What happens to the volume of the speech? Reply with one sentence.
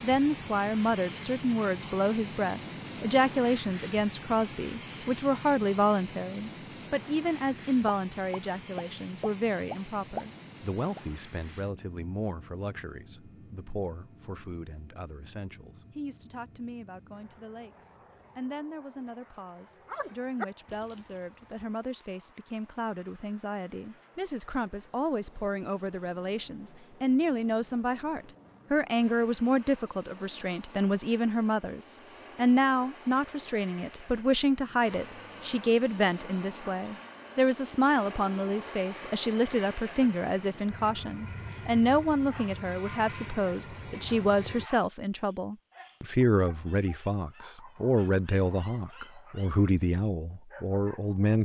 The loudness of the speech goes down, then up.